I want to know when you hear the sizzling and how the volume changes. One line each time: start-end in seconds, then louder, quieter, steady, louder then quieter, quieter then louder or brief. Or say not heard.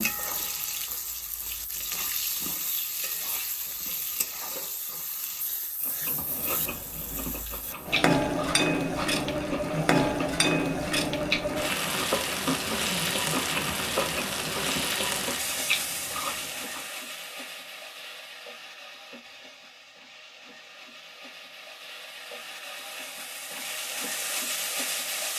0.0-25.3 louder then quieter.